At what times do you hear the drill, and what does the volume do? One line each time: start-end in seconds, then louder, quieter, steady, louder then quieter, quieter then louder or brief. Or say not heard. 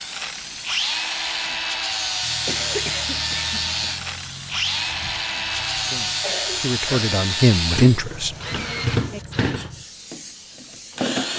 0.0-11.3 steady.